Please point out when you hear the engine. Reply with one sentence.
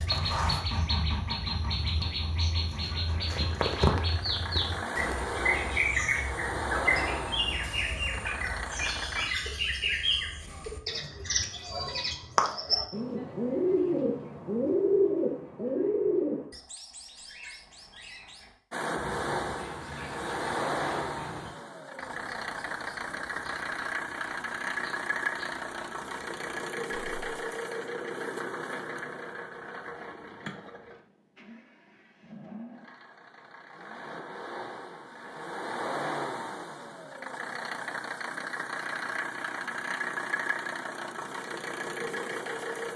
You can hear the engine from 0.1 to 9.3 s and from 18.7 to 42.9 s.